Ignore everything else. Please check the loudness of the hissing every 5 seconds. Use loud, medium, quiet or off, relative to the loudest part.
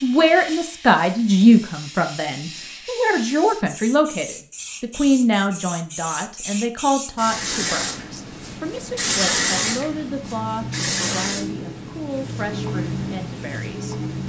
medium, loud, loud.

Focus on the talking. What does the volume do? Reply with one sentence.
The loudness of the talking goes down.